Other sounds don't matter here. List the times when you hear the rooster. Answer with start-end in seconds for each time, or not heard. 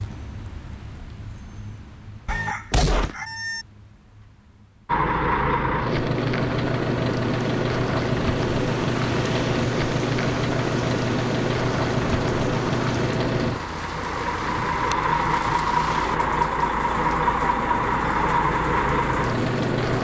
2.2-3.6.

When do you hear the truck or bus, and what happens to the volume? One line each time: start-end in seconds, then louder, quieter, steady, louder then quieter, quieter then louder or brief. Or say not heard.
4.8-20.0 steady.